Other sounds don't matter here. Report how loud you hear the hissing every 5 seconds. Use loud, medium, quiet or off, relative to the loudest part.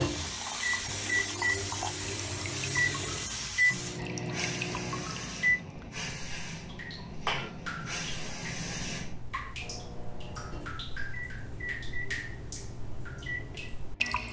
loud, loud, off.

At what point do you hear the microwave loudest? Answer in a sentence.
The loudest moment of the microwave is at 3 seconds.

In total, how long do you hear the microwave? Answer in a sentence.
You can hear the microwave for 10 seconds altogether.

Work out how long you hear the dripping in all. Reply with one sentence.
The dripping can be heard for 14 seconds in total.